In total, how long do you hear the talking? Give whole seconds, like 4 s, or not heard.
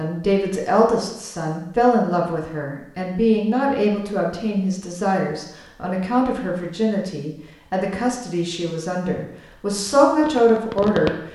11 s.